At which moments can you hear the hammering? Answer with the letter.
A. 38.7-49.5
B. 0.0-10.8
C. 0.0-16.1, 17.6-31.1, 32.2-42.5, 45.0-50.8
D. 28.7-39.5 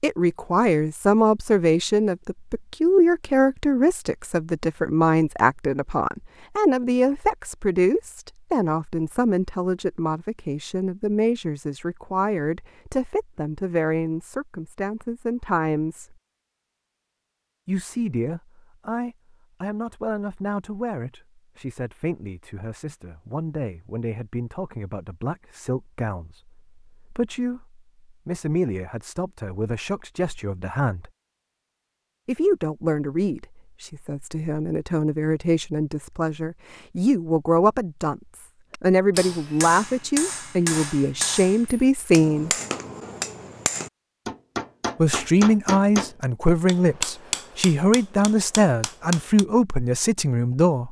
A.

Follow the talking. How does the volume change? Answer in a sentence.
The volume of the talking goes down, then up.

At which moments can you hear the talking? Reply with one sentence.
The talking can be heard from 0.0 to 16.1 s, from 17.6 to 31.1 s, from 32.2 to 42.5 s and from 45.0 to 50.8 s.